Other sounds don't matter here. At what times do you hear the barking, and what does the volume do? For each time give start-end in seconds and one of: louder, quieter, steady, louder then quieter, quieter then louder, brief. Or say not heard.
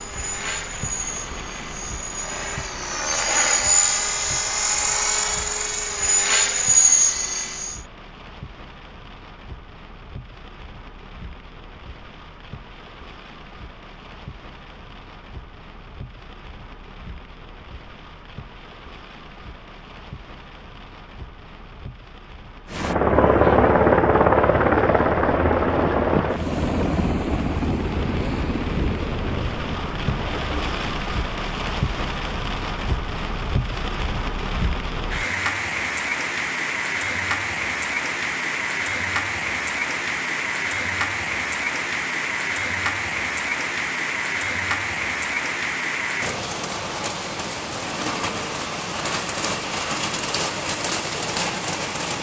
not heard.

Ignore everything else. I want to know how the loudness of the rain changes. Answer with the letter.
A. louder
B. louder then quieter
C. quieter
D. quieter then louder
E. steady
A.